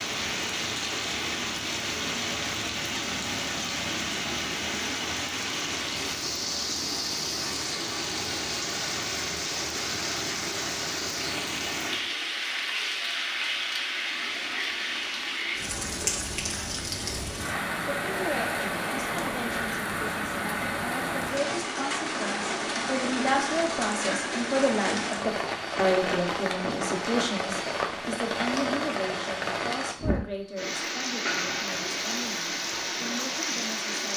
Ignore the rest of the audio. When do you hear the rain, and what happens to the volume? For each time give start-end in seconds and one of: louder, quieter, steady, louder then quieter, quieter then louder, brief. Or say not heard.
0.0-34.1 steady.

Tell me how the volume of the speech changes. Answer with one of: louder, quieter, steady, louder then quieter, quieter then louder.
louder then quieter.